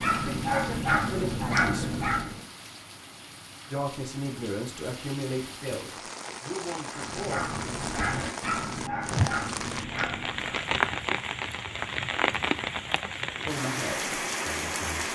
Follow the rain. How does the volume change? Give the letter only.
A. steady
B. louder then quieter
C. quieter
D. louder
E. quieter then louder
D.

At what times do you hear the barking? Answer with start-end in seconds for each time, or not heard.
0.0-2.4, 6.9-10.7.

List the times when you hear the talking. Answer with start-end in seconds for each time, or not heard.
0.1-1.9, 3.7-8.2, 13.4-14.9.